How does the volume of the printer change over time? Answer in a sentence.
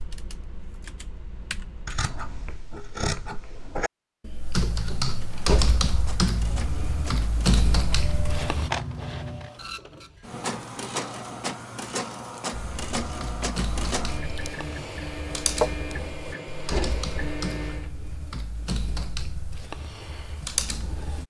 The loudness of the printer goes up.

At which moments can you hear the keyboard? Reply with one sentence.
You can hear the keyboard from 0.0 to 2.6 s, from 4.2 to 8.7 s and from 12.5 to 21.2 s.